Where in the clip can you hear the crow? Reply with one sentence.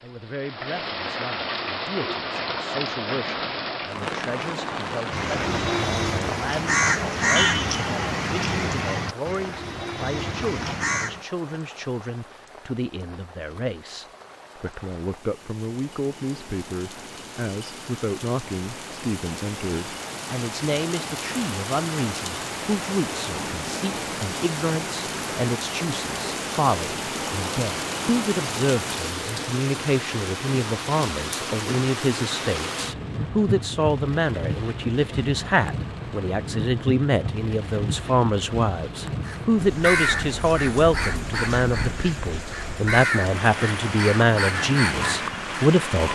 The crow can be heard from 5.1 to 11.2 s and from 39.2 to 45.7 s.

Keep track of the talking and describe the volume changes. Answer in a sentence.
The volume of the talking goes up.